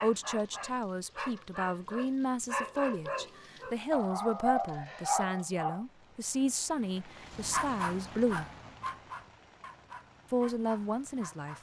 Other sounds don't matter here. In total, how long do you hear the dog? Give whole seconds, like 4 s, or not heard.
10 s.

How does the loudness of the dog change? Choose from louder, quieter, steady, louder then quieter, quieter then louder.
louder then quieter.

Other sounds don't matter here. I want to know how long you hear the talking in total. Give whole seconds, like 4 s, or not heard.
10 s.